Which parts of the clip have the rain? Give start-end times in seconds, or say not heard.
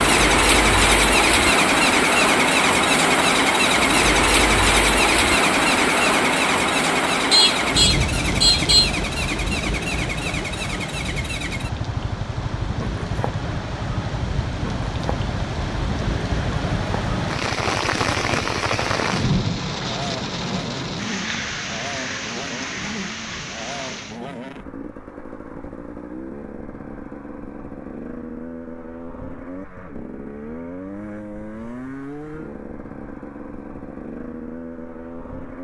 0.0-24.2.